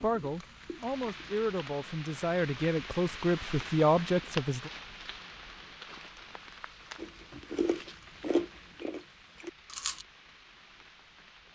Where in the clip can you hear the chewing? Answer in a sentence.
The chewing can be heard from 0.0 to 1.4 s and from 7.0 to 10.1 s.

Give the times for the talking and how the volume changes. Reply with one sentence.
You can hear the talking from 0.0 to 4.7 s, getting louder.